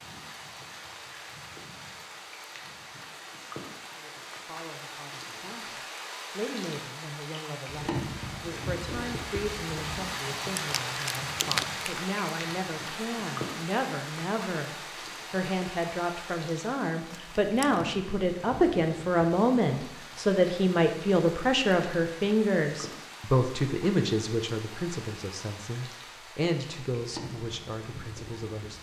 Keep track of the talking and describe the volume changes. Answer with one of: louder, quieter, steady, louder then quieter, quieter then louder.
louder then quieter.